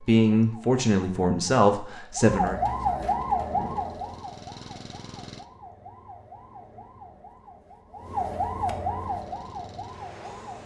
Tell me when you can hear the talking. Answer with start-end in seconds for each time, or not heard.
0.0-2.5.